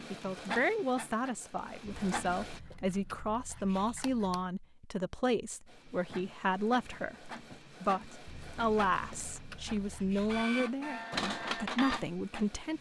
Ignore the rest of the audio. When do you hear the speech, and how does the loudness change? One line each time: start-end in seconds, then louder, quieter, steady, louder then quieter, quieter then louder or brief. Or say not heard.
0.1-12.7 steady.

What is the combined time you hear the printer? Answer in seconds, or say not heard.
10 s.